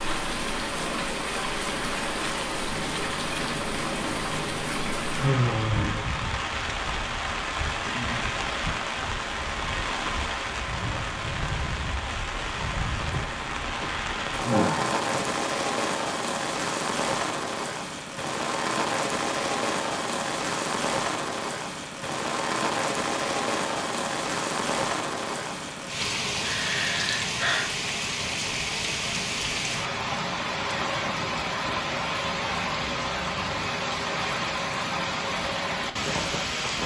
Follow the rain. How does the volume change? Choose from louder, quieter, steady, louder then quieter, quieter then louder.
steady.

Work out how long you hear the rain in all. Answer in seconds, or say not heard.
37 s.